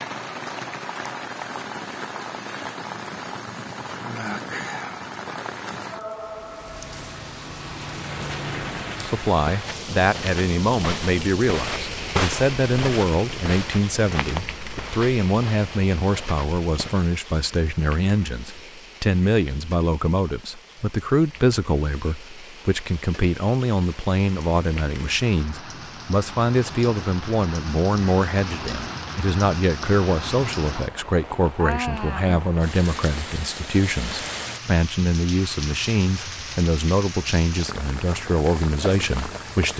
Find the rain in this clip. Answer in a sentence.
The rain can be heard from 0.0 to 39.7 s.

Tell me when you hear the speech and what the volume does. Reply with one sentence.
The speech can be heard from 9.0 to 39.7 s, at a steady volume.